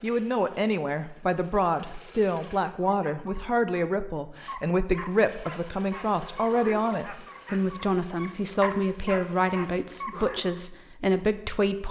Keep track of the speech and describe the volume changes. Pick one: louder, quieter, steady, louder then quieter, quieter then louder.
steady.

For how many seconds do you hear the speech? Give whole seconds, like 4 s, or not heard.
12 s.